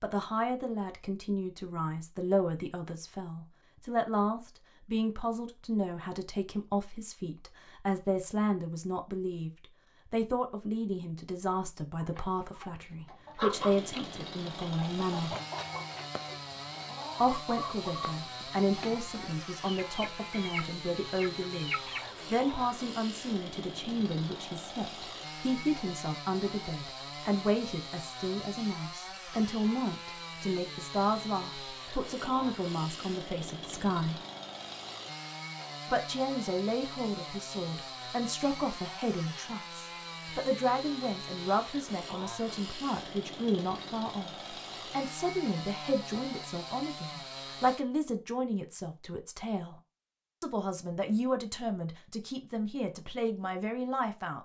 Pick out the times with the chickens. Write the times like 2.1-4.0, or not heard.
11.9-22.3.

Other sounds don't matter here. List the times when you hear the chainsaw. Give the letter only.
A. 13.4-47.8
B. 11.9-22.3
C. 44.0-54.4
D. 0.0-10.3
A.